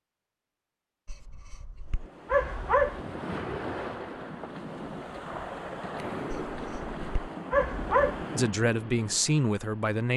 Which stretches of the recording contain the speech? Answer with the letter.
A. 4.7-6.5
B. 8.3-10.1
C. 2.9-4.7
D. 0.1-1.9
B.